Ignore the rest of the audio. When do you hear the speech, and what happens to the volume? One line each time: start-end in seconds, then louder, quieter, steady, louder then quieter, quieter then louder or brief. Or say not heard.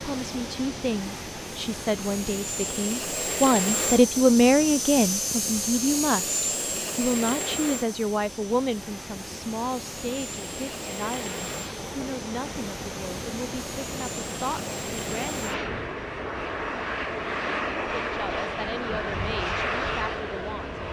0.0-15.6 louder then quieter
18.0-20.8 brief.